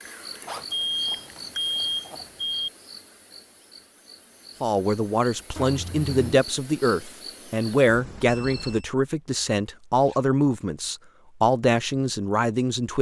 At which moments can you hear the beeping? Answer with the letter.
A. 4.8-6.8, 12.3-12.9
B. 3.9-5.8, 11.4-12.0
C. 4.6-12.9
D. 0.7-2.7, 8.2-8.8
D.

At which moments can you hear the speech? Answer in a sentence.
You can hear the speech from 4.6 to 12.9 s.